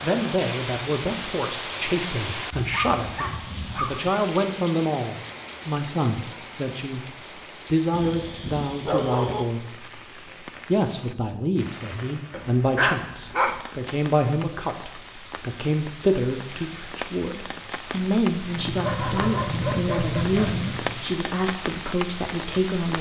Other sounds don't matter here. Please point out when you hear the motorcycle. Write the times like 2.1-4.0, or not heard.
18.4-21.0.